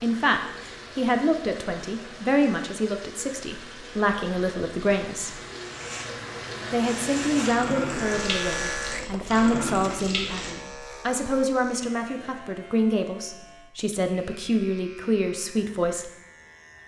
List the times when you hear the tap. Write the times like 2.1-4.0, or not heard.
0.0-10.6.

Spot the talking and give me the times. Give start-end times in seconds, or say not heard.
0.0-5.4, 6.7-16.1.